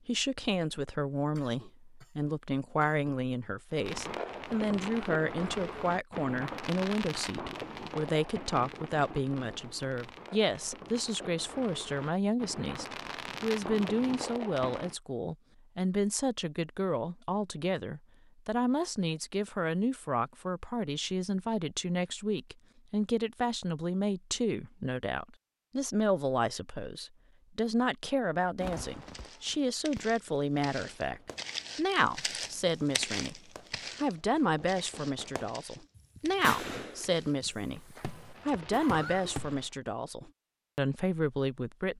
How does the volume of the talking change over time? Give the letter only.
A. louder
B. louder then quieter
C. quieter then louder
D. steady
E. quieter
D.